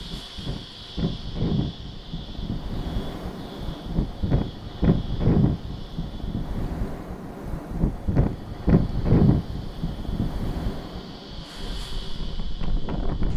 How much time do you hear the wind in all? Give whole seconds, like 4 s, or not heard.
13 s.